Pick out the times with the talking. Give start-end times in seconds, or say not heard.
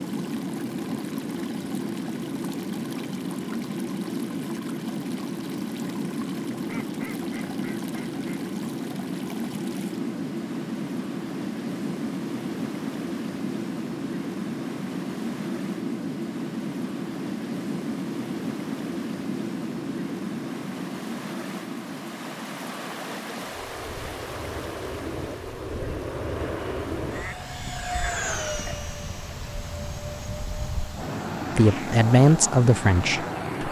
31.6-33.6.